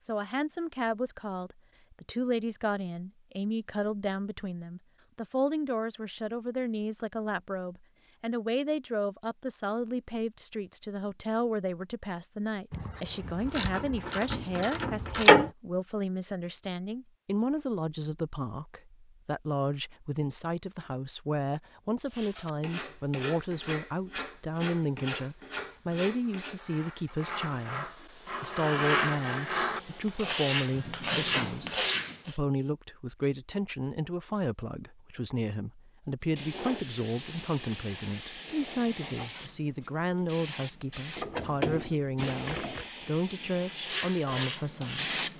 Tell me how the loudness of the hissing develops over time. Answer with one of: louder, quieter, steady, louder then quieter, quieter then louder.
steady.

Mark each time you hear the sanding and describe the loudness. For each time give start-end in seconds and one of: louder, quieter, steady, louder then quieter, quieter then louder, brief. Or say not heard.
22.1-32.4 louder
43.8-45.2 brief.